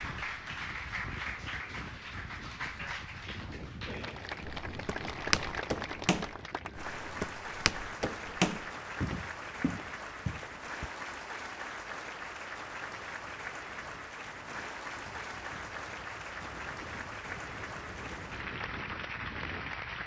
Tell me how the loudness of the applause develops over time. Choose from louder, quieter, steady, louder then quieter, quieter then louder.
steady.